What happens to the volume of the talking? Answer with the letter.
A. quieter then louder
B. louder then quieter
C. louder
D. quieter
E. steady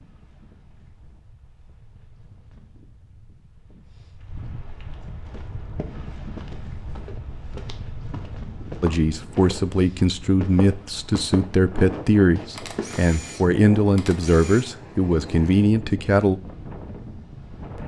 E.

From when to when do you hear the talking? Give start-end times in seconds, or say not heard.
8.8-16.4.